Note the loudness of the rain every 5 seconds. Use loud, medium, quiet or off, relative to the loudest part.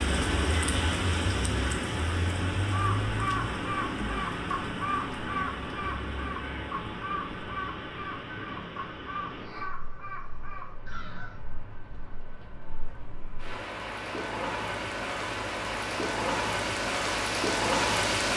loud, medium, medium, loud.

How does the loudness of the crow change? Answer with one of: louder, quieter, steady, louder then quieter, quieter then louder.
quieter.